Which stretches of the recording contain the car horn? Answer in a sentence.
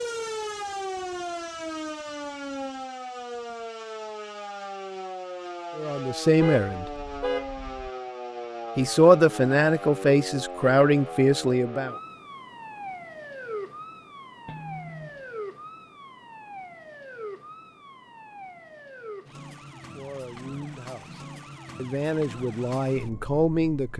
You can hear the car horn from 6.4 to 7.9 s and from 14.4 to 15.3 s.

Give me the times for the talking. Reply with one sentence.
You can hear the talking from 5.8 to 6.8 s, from 8.8 to 11.9 s and from 19.7 to 23.9 s.